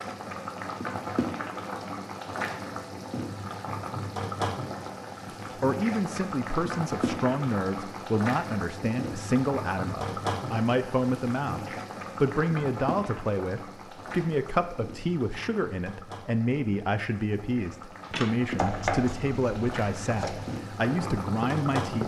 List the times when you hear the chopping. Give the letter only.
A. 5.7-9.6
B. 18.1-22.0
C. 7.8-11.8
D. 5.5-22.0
B.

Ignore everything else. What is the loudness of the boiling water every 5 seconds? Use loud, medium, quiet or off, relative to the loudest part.
loud, loud, loud, medium, loud.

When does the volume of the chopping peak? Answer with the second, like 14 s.
19 s.